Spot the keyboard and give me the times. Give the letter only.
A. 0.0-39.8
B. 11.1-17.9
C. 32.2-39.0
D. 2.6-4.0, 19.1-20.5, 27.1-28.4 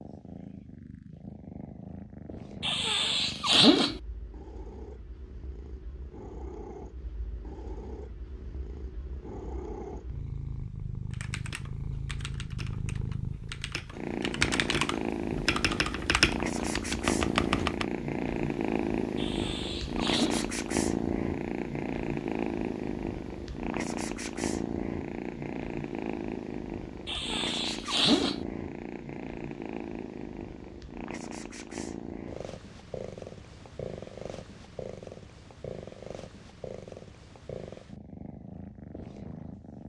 B.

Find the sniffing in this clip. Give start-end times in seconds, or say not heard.
2.6-4.0, 19.1-20.5, 27.1-28.4.